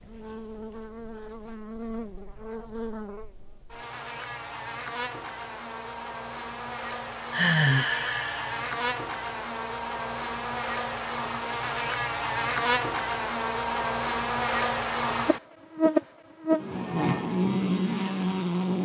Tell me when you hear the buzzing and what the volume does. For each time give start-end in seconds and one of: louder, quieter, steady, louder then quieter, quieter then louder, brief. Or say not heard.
0.0-18.8 louder.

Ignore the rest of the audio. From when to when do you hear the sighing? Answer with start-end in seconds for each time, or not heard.
6.9-8.6.